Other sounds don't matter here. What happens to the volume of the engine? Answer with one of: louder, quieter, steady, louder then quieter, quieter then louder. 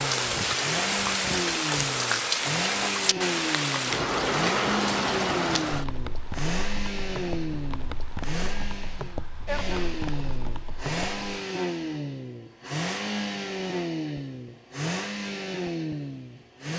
steady.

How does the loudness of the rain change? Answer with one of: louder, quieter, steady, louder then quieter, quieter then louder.
quieter.